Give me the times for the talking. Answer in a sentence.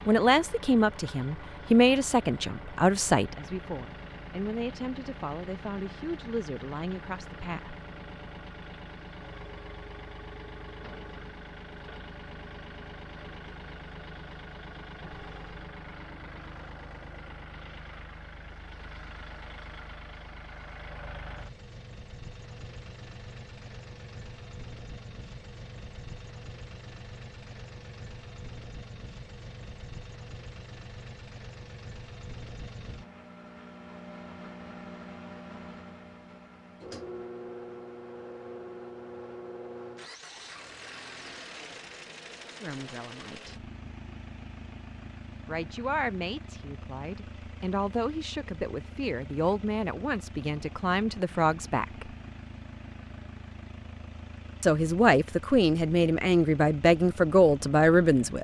The talking can be heard from 0.1 to 7.8 s, from 42.6 to 43.7 s, from 45.5 to 52.1 s and from 54.6 to 58.4 s.